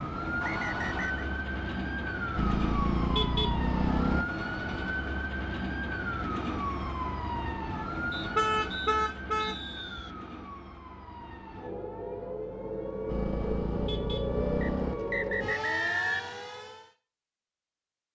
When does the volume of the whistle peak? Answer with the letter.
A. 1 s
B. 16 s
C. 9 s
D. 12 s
B.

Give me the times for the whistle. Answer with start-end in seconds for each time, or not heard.
0.4-1.2, 8.1-10.1, 14.6-16.4.